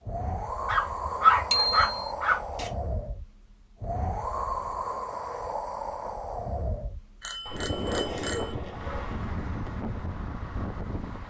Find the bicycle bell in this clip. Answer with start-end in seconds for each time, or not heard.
1.5-1.9, 7.2-8.6.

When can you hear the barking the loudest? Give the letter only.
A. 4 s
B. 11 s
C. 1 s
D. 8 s
C.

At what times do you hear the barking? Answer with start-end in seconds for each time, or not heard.
0.7-2.7, 7.5-9.2.